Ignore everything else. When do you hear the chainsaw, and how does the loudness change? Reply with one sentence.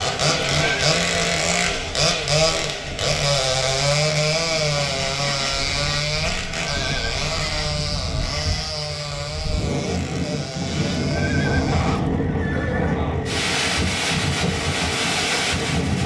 You can hear the chainsaw from 0.0 to 16.0 s, getting quieter.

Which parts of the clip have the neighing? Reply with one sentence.
The neighing can be heard from 0.2 to 0.9 s, from 6.4 to 7.5 s and from 10.8 to 13.0 s.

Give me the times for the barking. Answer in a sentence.
You can't hear the barking here.